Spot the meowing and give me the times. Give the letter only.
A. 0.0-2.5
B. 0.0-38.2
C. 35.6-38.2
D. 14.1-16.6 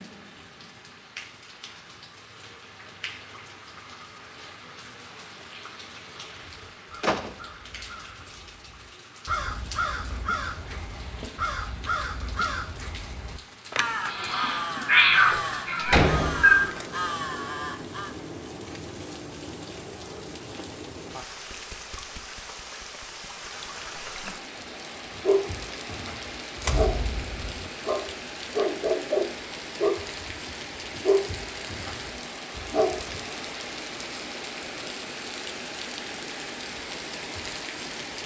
D.